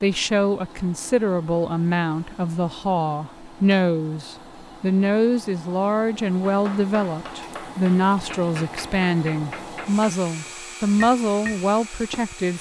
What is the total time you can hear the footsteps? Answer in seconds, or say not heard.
not heard.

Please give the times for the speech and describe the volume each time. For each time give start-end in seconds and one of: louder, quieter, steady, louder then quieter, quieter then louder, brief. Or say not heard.
0.0-12.5 steady.